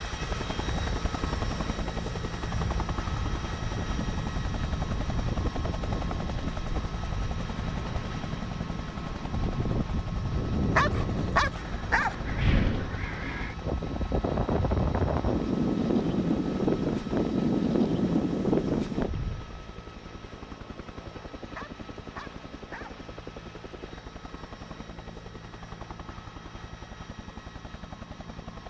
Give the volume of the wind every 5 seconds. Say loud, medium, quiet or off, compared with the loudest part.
quiet, medium, medium, loud, off, off.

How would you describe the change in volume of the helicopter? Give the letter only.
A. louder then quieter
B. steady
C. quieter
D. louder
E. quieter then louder
C.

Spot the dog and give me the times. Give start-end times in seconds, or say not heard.
10.8-12.2, 21.6-22.9.